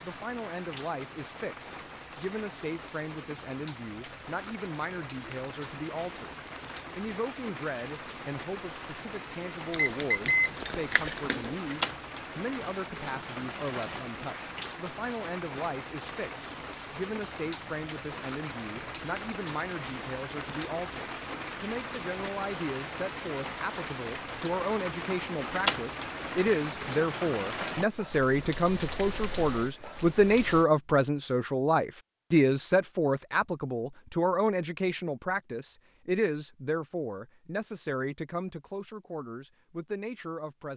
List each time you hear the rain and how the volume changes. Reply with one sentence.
The rain can be heard from 0.0 to 30.6 s, getting louder.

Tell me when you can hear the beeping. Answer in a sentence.
You can hear the beeping from 9.7 to 11.6 s.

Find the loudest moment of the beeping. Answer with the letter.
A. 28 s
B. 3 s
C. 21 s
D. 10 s
D.